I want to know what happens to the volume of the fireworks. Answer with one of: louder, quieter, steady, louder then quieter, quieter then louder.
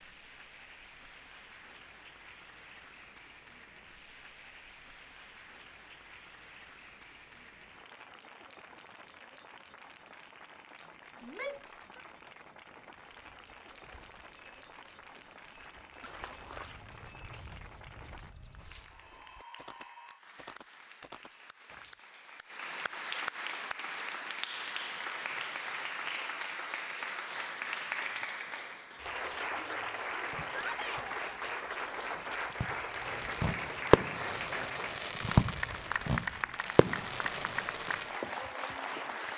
louder then quieter.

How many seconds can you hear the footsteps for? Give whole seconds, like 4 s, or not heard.
9 s.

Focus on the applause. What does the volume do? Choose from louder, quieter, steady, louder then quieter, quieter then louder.
louder.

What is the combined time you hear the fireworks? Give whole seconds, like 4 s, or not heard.
8 s.